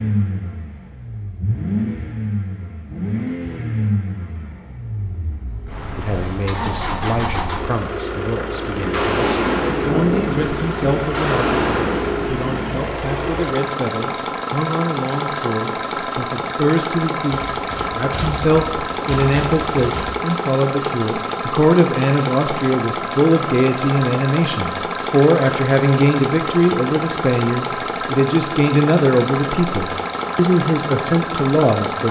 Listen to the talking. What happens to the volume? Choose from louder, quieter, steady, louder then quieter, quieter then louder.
louder.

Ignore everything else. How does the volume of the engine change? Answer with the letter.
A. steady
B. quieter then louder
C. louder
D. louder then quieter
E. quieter
A.